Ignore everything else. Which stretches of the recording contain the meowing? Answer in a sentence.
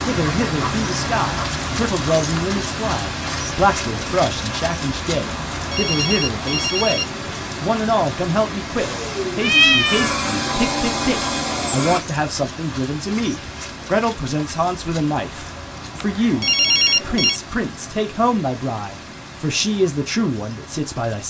The meowing can be heard from 9.4 to 10.2 s.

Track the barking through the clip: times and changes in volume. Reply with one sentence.
The barking can't be heard in this clip.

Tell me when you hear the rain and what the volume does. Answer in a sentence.
You can hear the rain from 0.0 to 21.2 s, getting quieter.